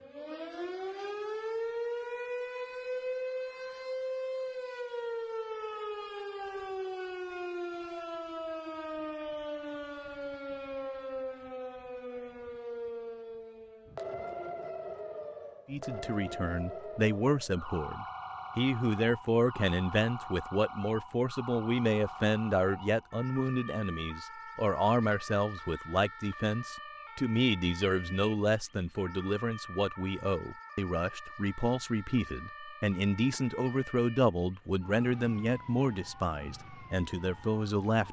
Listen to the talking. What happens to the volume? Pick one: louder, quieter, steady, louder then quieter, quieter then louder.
steady.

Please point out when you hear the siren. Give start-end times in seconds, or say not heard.
0.0-38.0.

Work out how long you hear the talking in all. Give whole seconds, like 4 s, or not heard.
22 s.